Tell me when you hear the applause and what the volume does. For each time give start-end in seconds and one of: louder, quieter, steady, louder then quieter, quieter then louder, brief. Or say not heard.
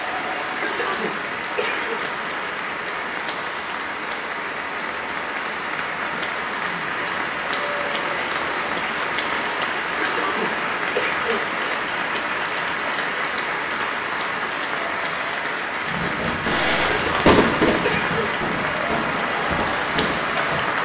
0.0-20.8 steady.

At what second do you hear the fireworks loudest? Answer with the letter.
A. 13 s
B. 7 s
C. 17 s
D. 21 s
C.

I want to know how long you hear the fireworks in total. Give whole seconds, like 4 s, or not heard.
5 s.